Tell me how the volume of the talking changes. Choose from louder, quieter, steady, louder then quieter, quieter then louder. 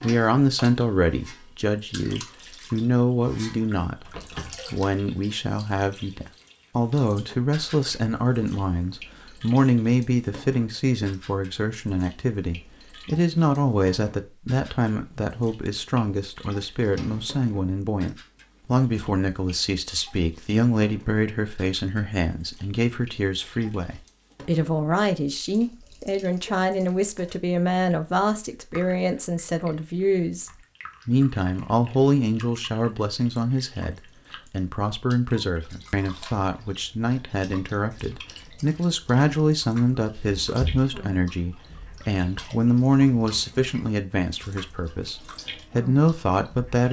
steady.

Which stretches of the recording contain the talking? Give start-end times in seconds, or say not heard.
0.0-46.8.